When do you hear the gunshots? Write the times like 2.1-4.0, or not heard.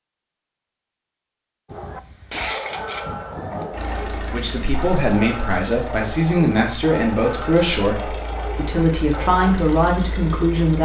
1.6-3.6.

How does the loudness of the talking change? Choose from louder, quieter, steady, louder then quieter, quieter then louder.
steady.